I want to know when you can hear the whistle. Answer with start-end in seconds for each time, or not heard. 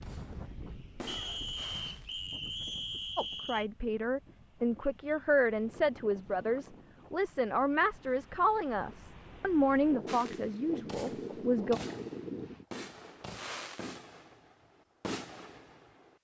1.1-3.7.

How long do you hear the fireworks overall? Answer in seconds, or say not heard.
8 s.